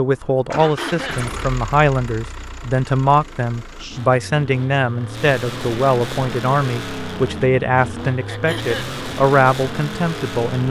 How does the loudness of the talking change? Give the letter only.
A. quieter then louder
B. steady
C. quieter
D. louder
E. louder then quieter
B.